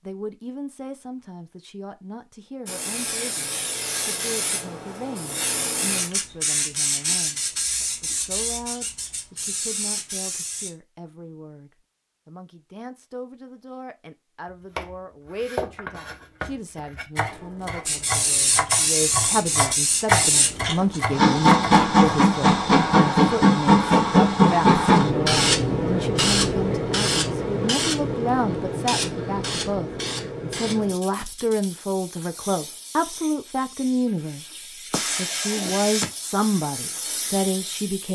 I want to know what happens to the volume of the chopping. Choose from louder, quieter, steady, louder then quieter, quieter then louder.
louder.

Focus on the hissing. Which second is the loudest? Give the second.
24 s.